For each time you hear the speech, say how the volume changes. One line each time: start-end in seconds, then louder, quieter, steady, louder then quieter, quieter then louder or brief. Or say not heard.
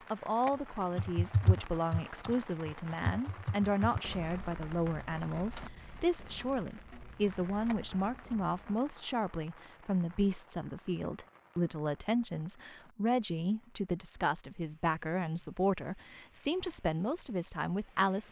0.1-18.2 steady.